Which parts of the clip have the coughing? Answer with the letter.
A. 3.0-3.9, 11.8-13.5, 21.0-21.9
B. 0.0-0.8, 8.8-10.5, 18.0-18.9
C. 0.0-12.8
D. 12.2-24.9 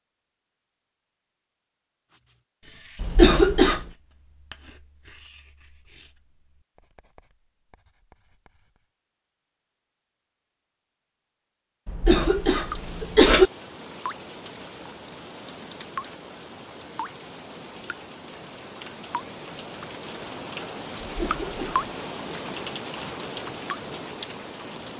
A.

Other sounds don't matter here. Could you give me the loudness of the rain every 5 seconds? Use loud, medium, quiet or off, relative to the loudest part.
off, off, medium, medium, loud.